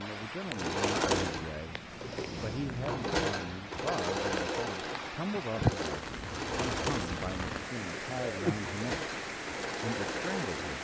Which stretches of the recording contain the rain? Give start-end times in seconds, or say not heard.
0.0-10.7.